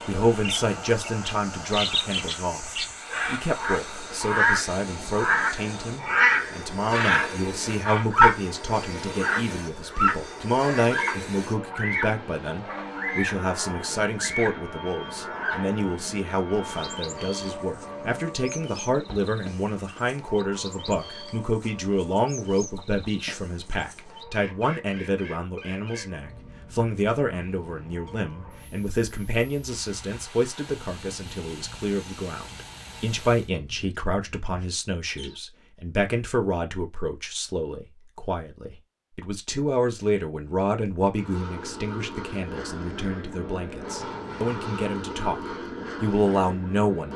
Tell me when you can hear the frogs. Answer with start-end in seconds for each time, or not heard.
not heard.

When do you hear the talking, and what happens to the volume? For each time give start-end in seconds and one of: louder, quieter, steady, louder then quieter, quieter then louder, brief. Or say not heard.
0.1-47.1 steady.